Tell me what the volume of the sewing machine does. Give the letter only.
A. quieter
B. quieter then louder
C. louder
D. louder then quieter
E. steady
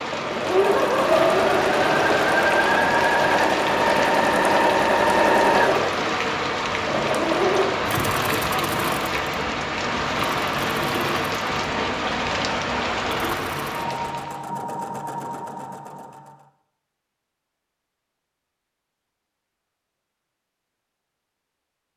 A.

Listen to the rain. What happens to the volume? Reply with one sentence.
The volume of the rain stays about the same.